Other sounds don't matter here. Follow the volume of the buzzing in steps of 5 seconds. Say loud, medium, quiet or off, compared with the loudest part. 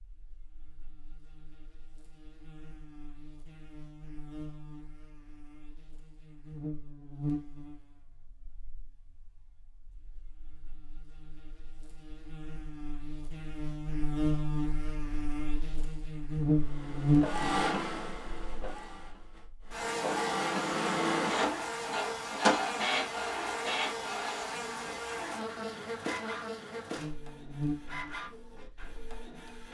quiet, quiet, medium, loud, medium, medium.